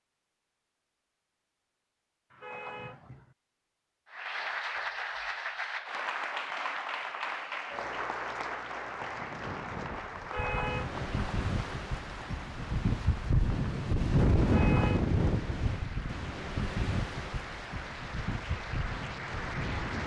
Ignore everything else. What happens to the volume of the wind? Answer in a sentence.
The volume of the wind goes up, then down.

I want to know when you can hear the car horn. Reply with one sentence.
You can hear the car horn from 2.3 to 3.4 s, from 10.2 to 11.1 s and from 14.4 to 15.1 s.